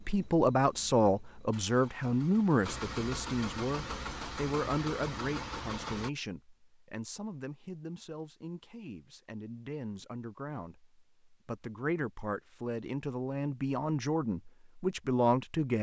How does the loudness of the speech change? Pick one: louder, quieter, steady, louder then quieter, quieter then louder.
quieter then louder.